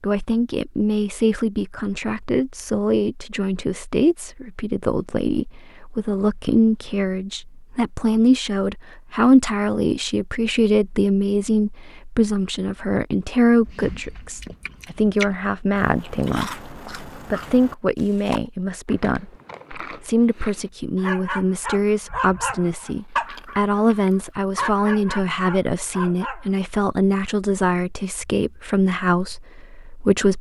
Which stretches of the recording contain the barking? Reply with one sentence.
The barking can be heard from 20.9 to 26.5 s.